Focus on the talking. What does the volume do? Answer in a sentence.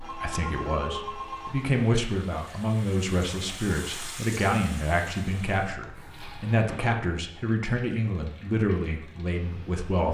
The volume of the talking stays about the same.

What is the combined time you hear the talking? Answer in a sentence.
You can hear the talking for 10 seconds altogether.